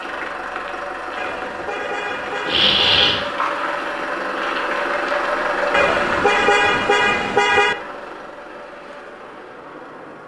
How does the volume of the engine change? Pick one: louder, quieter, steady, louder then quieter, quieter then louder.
louder then quieter.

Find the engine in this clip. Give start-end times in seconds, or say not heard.
0.0-10.2.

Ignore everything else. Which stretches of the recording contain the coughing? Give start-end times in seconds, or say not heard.
2.5-3.3.